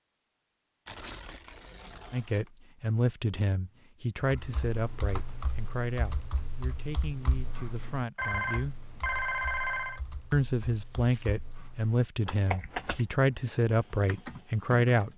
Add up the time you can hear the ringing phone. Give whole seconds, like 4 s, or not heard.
2 s.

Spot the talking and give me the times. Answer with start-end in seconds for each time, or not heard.
2.1-8.8, 10.3-15.1.